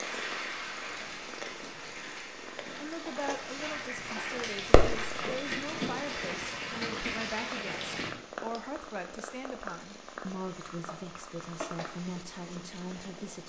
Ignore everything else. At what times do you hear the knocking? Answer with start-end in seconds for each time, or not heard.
not heard.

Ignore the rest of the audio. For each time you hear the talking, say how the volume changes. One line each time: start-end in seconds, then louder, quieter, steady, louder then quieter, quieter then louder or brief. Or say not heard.
2.8-13.4 steady.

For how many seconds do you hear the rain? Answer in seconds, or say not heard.
8 s.